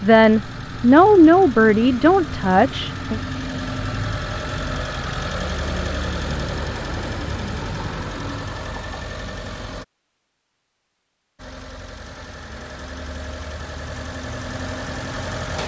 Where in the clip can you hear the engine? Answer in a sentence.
You can hear the engine from 0.0 to 9.8 s and from 11.3 to 15.6 s.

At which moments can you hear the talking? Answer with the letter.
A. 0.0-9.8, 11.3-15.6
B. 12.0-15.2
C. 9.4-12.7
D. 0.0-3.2
D.